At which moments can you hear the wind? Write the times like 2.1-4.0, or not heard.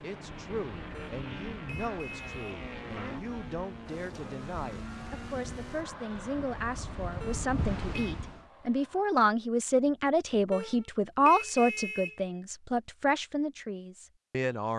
0.0-8.4.